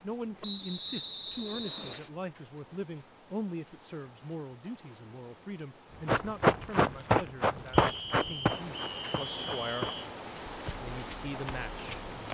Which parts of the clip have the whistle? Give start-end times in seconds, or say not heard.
0.4-2.1, 7.7-10.1.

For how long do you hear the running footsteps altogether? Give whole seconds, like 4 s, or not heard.
6 s.